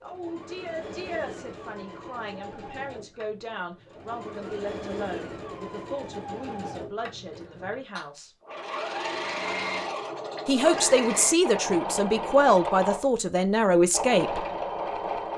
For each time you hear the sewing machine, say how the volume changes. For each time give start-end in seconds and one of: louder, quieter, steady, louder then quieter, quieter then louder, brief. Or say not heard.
0.0-15.3 louder.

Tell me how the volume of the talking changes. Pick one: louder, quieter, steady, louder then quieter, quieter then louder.
louder.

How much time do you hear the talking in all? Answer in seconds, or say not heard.
12 s.